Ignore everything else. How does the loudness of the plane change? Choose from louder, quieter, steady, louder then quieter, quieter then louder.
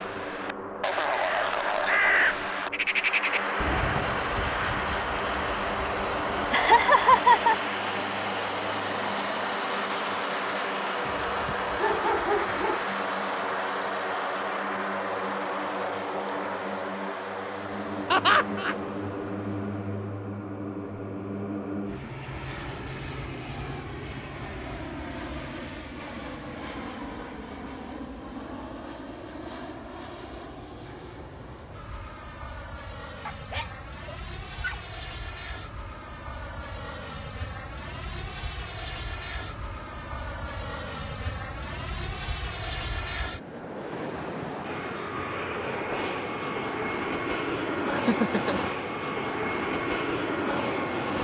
quieter then louder.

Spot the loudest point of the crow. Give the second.
2 s.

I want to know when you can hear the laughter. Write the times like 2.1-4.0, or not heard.
6.5-7.5, 18.1-18.8, 47.9-48.6.